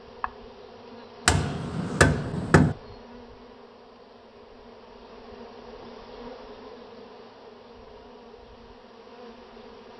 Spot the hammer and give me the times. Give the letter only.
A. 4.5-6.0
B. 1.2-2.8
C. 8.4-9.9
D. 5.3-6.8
B.